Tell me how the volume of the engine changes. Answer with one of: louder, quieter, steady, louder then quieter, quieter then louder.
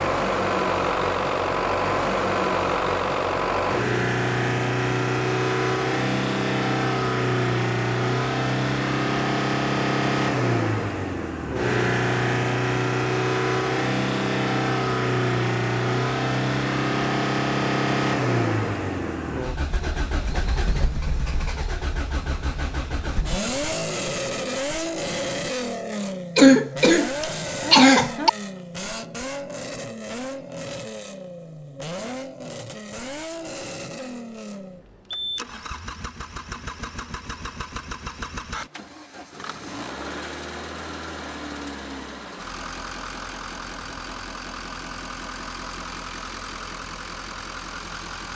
quieter.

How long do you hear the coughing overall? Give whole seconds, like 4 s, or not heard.
2 s.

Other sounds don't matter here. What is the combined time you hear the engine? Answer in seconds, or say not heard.
48 s.